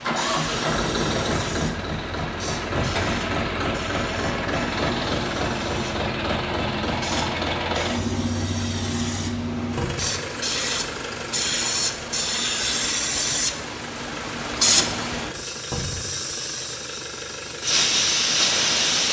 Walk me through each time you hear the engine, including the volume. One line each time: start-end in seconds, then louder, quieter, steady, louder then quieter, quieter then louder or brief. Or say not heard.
0.0-19.0 quieter.